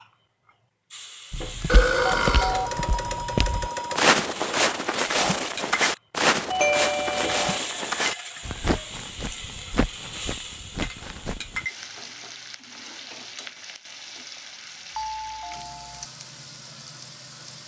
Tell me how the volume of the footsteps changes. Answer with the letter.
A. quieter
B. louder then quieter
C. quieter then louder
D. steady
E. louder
B.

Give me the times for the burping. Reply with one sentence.
You can hear the burping from 1.6 to 2.8 s.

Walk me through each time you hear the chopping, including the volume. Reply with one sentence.
The chopping can't be heard in this clip.